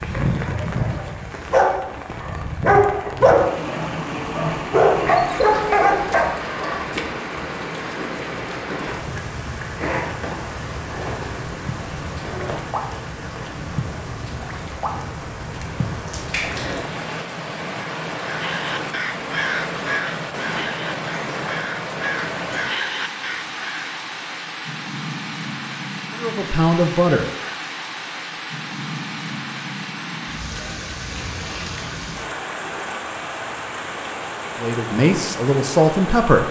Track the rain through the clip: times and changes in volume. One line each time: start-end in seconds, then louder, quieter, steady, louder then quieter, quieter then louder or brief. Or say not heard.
0.0-36.4 steady.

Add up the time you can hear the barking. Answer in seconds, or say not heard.
7 s.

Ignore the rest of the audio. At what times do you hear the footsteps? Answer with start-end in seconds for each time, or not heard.
not heard.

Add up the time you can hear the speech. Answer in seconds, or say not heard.
3 s.